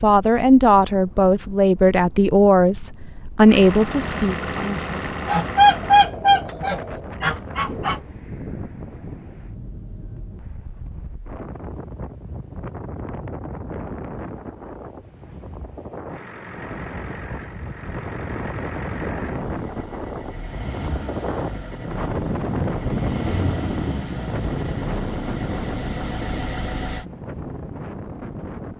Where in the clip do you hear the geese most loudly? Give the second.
6 s.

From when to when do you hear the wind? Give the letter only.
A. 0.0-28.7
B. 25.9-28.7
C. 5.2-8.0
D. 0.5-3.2
A.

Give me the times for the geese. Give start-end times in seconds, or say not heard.
5.2-8.0.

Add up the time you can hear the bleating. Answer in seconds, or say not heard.
not heard.